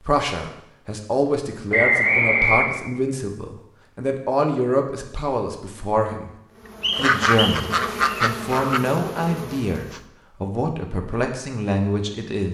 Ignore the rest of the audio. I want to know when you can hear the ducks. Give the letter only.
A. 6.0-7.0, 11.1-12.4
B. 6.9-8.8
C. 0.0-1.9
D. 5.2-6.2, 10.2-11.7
B.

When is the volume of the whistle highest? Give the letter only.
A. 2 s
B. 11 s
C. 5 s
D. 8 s
A.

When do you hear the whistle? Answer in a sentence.
You can hear the whistle from 1.7 to 2.8 s and from 6.8 to 8.2 s.